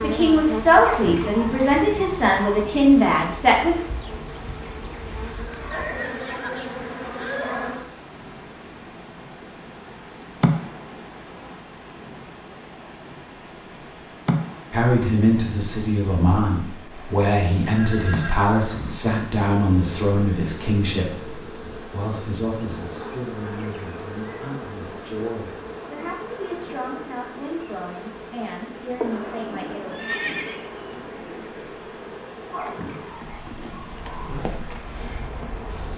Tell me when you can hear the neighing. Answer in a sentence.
You can hear the neighing from 5.3 to 7.8 s, from 17.6 to 19.0 s and from 29.9 to 30.9 s.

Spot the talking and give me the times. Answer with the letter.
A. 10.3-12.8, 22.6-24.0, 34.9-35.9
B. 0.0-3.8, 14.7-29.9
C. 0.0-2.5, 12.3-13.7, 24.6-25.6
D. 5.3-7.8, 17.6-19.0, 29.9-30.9
B.